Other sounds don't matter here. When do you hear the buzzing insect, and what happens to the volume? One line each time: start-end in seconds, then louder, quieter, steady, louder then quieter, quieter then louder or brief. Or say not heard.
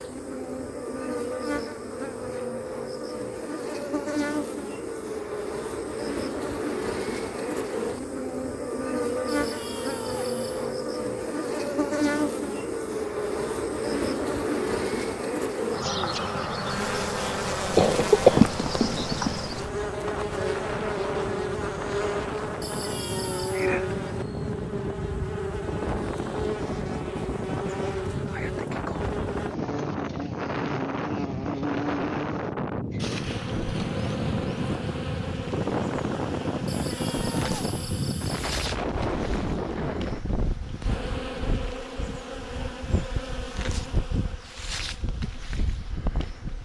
0.0-46.5 quieter.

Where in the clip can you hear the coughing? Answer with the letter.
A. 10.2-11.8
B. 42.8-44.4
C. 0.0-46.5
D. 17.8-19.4
D.